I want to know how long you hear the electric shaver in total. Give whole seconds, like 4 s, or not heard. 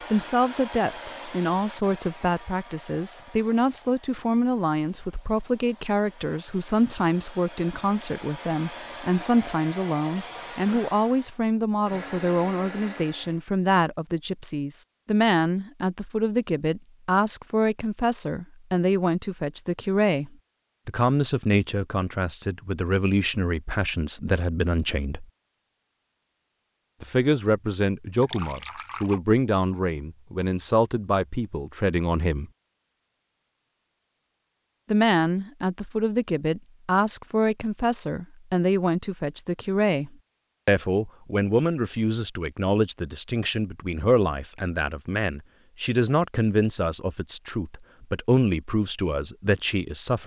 not heard.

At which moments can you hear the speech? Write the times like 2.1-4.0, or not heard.
0.1-25.2, 27.0-32.5, 34.9-50.2.